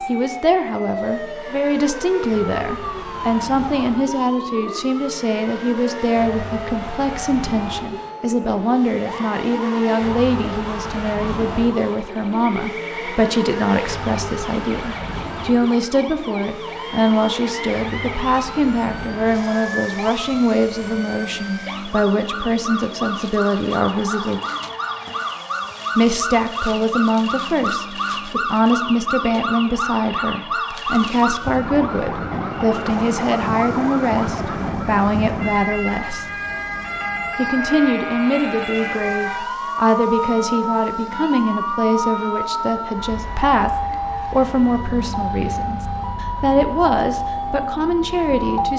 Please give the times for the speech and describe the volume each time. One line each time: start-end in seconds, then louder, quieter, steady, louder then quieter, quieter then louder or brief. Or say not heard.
0.1-24.4 steady
25.9-36.2 steady
37.4-48.7 steady.